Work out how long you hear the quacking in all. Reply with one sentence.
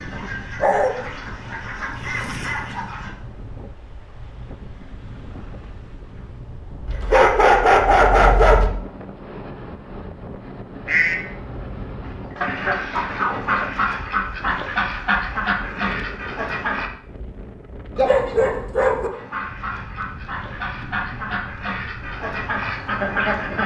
You can hear the quacking for 14 seconds altogether.